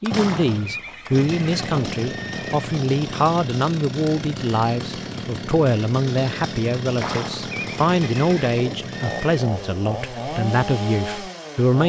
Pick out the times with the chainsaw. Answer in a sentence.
The chainsaw can be heard from 0.1 to 11.8 s.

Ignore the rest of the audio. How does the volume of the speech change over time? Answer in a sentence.
The volume of the speech stays about the same.